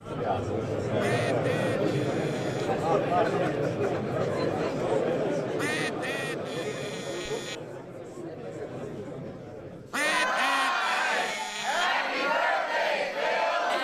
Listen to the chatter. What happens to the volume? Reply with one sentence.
The volume of the chatter goes down, then up.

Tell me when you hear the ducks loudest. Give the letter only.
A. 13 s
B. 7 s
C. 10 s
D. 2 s
C.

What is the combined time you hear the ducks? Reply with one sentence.
You can hear the ducks for 6 seconds altogether.